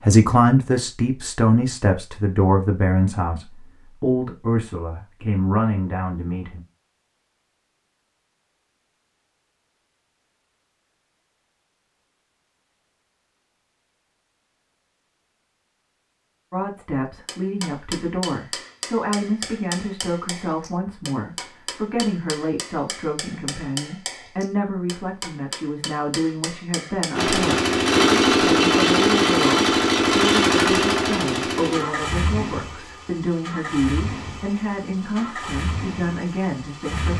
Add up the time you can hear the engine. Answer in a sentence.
The engine can be heard for 10 seconds in total.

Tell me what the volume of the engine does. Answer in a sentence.
The loudness of the engine goes down.